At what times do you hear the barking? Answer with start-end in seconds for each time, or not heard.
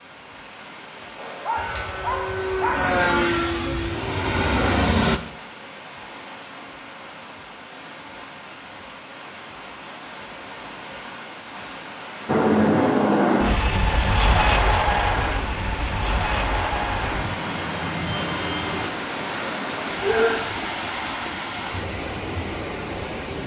1.1-3.0, 20.0-20.4.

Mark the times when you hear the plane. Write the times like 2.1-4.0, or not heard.
1.6-5.2, 12.2-18.9.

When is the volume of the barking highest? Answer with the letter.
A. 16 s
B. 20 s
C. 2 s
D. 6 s
B.